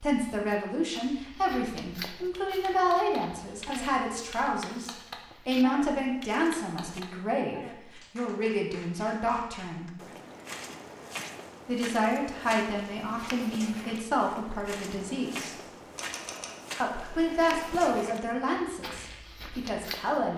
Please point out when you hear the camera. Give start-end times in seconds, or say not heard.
15.9-16.6.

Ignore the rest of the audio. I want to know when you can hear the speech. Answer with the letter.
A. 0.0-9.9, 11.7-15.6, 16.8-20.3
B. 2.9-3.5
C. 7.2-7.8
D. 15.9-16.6
A.